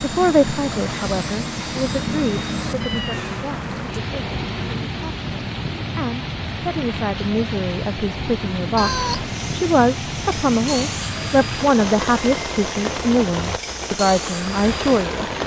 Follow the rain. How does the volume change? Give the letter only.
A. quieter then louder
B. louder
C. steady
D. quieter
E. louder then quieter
C.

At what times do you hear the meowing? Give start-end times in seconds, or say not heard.
2.8-4.8, 8.8-9.4.